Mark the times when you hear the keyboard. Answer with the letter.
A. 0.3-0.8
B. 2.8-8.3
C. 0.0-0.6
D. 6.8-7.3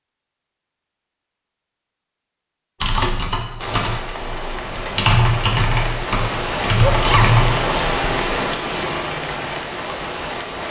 B.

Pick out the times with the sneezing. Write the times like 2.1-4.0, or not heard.
6.8-7.3.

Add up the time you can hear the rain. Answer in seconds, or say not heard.
7 s.